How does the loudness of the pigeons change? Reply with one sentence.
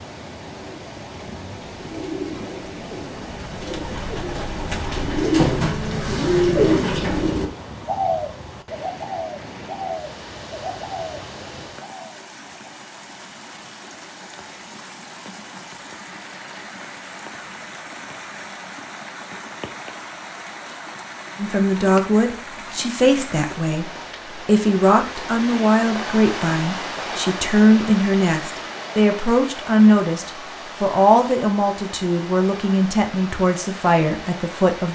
The loudness of the pigeons goes up, then down.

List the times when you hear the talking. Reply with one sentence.
The talking can be heard from 21.4 to 34.8 s.